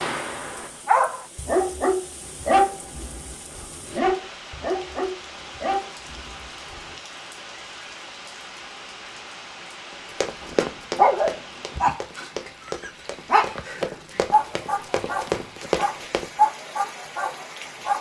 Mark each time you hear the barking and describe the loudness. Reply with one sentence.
You can hear the barking from 0.0 to 7.0 s, getting quieter; and from 10.4 to 17.9 s, getting quieter then louder.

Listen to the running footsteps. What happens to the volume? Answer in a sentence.
The volume of the running footsteps goes down, then up.